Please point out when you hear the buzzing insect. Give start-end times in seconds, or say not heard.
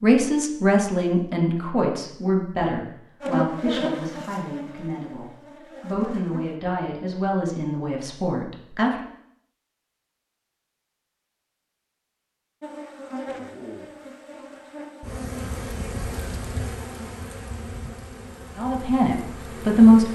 3.2-6.5, 12.6-20.1.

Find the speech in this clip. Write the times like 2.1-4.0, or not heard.
0.0-9.1, 18.6-20.1.